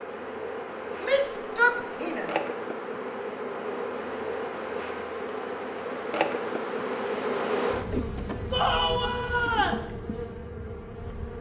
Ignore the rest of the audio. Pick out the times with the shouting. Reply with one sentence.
The shouting can be heard from 1.0 to 2.3 s and from 8.5 to 9.8 s.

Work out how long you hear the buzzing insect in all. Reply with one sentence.
The buzzing insect can be heard for 11 seconds in total.